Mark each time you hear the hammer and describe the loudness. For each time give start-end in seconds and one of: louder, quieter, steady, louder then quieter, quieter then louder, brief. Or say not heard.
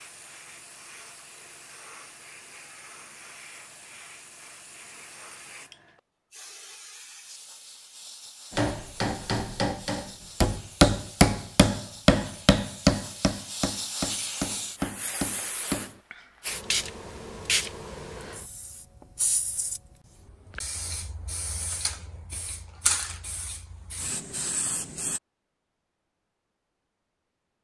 8.6-16.0 louder then quieter.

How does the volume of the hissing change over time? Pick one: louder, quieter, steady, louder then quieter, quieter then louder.
louder.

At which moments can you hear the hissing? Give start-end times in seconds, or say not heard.
0.0-25.2.